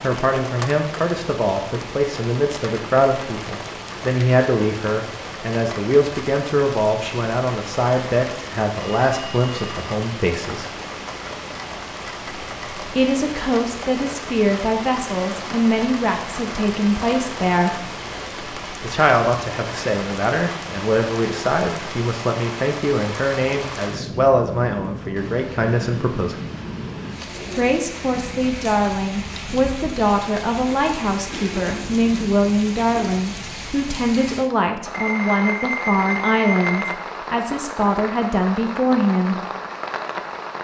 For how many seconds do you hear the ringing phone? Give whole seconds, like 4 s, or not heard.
3 s.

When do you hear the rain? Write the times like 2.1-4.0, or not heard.
0.0-40.5.